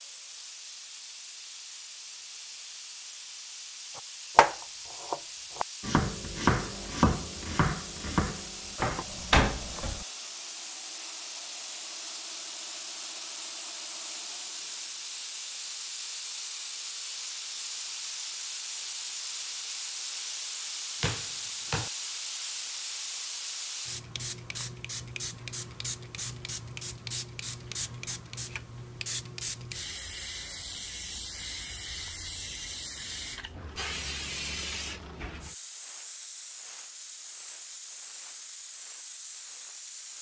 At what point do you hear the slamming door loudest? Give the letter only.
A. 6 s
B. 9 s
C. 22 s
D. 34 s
B.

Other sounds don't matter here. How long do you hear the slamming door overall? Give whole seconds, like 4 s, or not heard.
2 s.